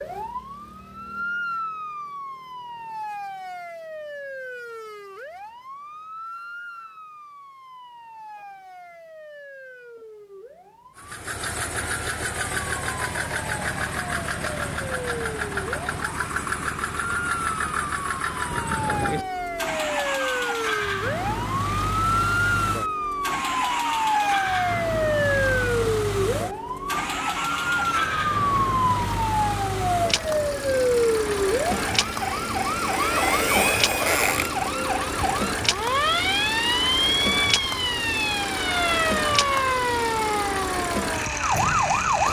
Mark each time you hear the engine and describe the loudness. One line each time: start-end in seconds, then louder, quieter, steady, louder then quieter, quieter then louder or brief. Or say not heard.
10.9-42.2 steady.